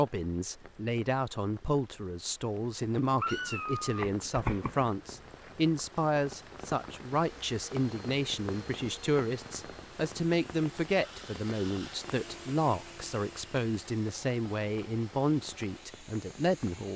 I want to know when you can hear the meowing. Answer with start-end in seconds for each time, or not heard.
3.2-4.8.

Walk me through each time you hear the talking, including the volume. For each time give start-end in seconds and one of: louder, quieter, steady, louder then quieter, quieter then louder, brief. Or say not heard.
0.0-16.9 steady.